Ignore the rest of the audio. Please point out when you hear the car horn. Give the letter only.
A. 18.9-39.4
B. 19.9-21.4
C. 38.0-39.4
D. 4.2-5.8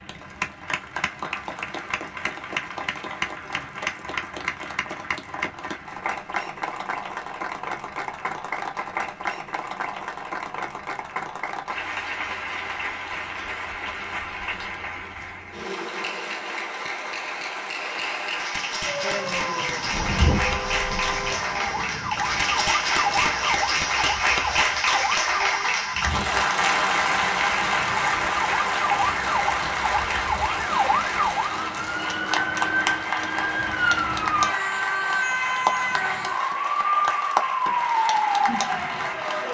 B.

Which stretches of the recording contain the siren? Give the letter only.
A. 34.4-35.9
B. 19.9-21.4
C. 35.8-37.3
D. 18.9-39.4
D.